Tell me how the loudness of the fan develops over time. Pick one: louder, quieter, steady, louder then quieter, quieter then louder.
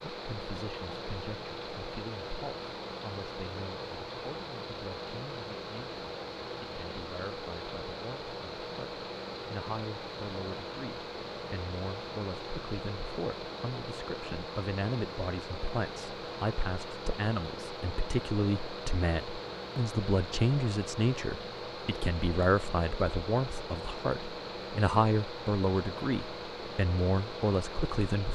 steady.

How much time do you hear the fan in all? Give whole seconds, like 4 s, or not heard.
28 s.